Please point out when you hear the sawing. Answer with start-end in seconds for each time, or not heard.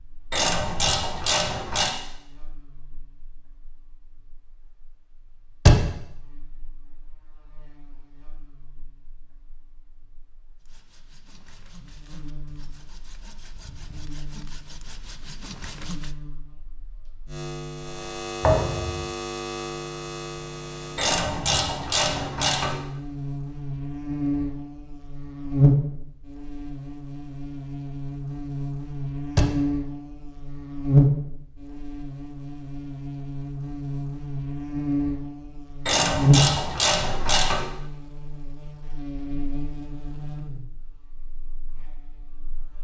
10.6-16.1.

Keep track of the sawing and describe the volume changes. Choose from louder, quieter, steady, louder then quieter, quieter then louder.
louder.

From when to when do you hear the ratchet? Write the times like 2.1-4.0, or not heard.
0.3-1.9, 20.9-22.8, 35.9-37.6.